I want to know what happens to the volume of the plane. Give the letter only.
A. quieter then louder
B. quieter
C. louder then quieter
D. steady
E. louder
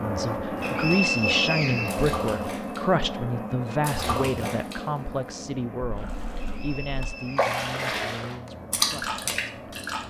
B.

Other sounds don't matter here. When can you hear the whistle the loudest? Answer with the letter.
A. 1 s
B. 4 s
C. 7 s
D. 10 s
A.